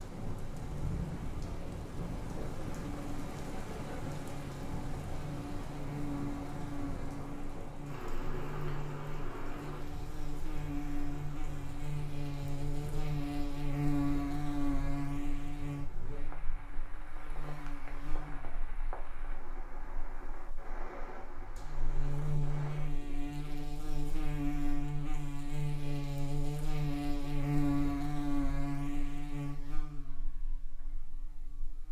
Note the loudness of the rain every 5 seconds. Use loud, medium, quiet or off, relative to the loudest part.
loud, loud, medium, medium, medium, off, off.